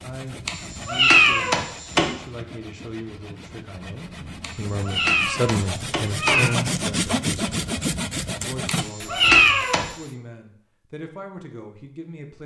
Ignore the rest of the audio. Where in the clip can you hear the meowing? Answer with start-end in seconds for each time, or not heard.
0.5-2.1, 4.4-6.5, 8.7-9.9.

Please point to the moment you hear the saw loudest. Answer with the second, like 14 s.
7 s.